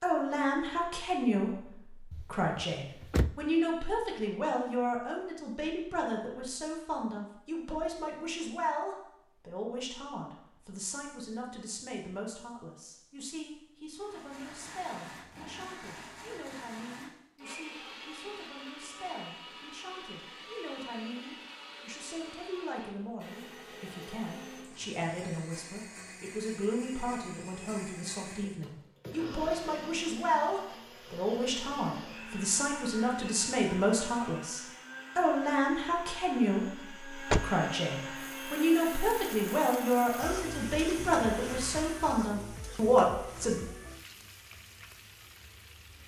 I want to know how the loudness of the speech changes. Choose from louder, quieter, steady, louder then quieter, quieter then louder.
quieter then louder.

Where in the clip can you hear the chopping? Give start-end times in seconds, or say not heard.
not heard.